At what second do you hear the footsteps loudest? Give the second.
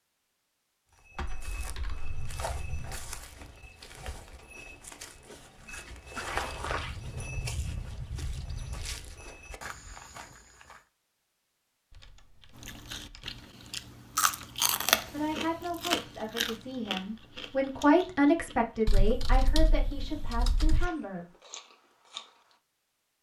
6 s.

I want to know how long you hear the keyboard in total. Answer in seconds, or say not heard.
6 s.